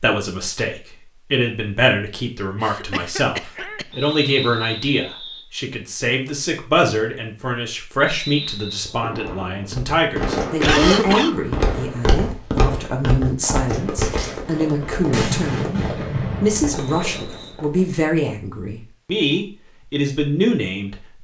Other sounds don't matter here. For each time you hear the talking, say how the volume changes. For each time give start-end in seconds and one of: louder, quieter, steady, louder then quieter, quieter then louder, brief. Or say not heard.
0.0-21.1 steady.